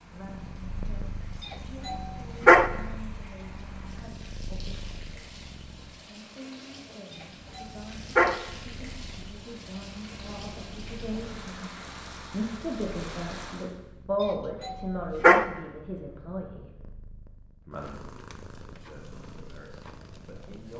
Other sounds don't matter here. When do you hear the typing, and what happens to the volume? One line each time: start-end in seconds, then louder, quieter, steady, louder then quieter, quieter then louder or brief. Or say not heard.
not heard.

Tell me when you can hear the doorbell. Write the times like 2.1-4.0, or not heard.
1.9-2.7, 7.5-8.3, 14.2-15.4.